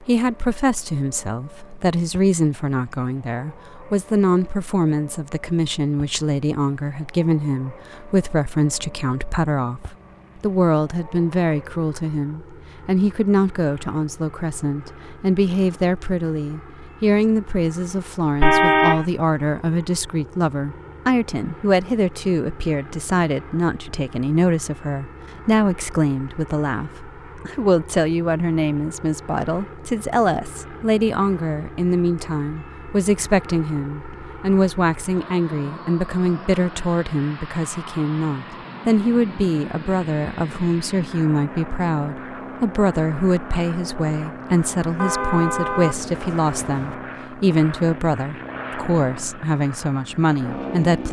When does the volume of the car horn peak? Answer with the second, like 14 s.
19 s.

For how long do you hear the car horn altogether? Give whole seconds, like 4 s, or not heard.
3 s.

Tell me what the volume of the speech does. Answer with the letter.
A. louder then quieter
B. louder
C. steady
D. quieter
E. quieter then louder
C.